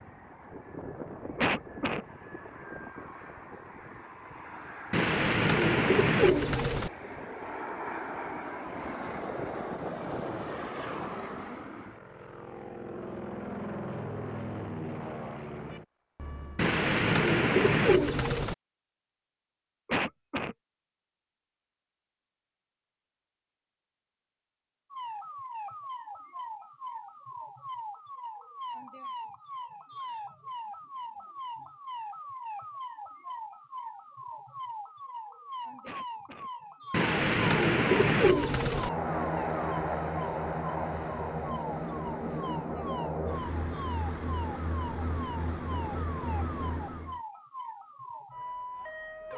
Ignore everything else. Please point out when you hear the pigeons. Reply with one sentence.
You can hear the pigeons from 4.9 to 6.9 s, from 16.6 to 18.6 s and from 36.9 to 38.9 s.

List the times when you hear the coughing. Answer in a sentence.
The coughing can be heard from 1.4 to 2.0 s, from 19.9 to 20.6 s and from 35.8 to 36.5 s.